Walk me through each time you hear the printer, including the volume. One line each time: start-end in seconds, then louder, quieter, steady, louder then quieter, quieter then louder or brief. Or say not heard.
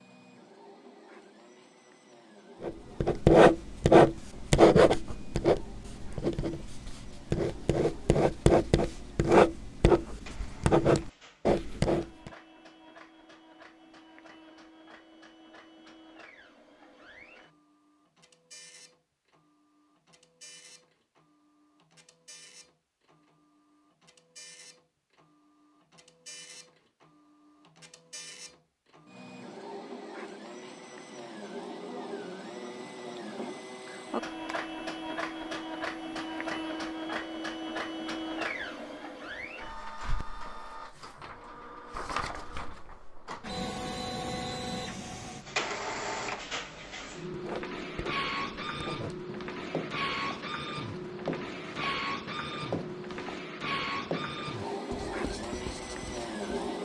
0.0-56.7 louder.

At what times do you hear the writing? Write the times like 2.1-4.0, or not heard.
2.6-12.3, 47.3-56.7.